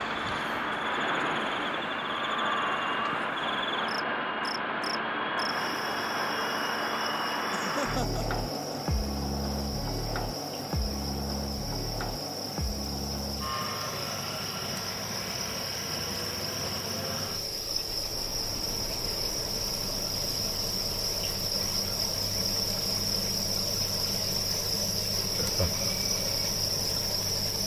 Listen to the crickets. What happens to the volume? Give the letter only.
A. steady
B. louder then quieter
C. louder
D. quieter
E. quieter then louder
C.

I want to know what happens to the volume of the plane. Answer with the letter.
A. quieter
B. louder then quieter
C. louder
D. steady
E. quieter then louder
A.